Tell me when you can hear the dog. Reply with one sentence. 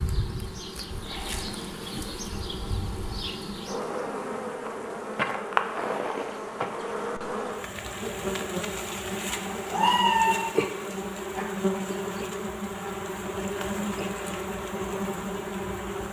The dog can be heard from 9.4 to 11.4 s.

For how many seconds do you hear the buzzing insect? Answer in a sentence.
You can hear the buzzing insect for 16 seconds altogether.